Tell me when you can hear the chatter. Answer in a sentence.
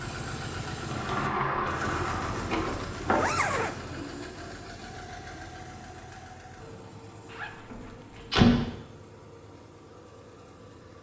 The chatter can't be heard in this clip.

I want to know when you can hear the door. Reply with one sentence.
The door can be heard from 0.8 to 3.2 s and from 7.7 to 8.7 s.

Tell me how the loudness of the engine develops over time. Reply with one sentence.
The loudness of the engine goes down.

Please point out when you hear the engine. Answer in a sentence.
The engine can be heard from 0.0 to 10.9 s.